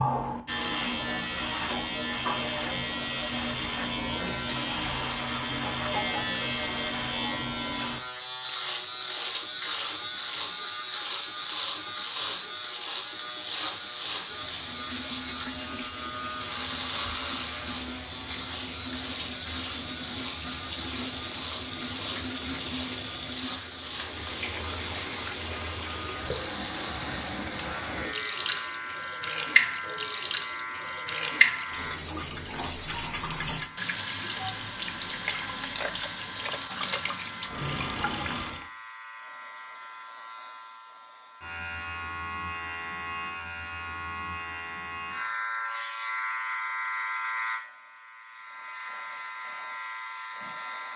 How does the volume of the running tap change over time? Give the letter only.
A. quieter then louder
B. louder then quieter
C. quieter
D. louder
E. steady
D.